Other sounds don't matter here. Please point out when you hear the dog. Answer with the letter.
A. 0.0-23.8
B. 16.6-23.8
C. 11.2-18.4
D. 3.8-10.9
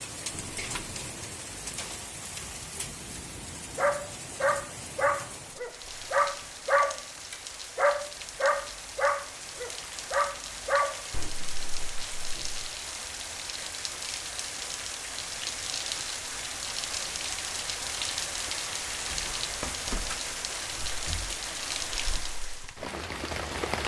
D.